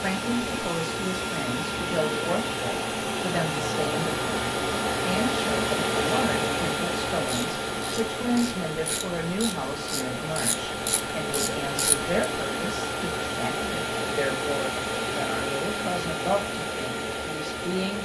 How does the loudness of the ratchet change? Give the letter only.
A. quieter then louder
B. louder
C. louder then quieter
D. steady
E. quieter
B.